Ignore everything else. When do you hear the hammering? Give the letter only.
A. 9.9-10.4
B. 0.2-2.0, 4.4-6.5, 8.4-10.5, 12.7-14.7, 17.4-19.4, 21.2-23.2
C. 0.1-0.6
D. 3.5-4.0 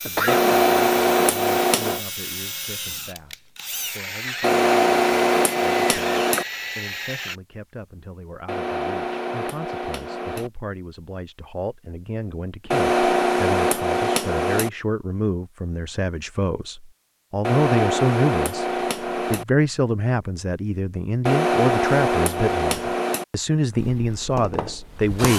B.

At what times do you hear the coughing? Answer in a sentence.
The coughing can be heard from 0.1 to 0.6 s.